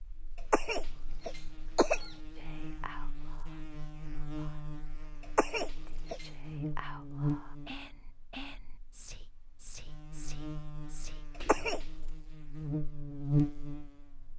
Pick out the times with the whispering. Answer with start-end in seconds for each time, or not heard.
2.4-11.8.